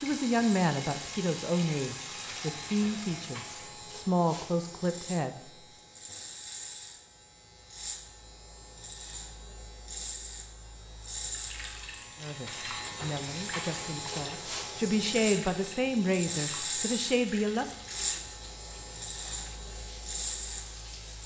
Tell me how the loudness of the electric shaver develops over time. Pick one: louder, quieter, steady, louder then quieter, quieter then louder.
louder.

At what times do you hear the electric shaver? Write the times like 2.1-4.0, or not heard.
0.0-21.2.